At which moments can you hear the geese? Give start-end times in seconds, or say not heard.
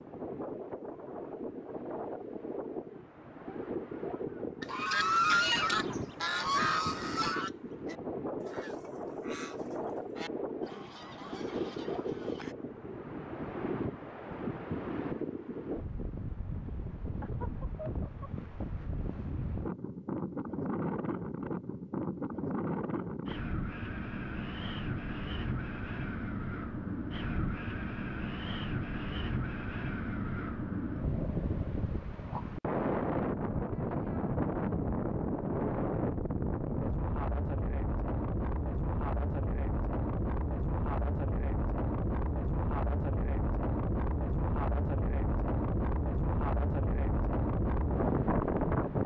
4.6-12.6.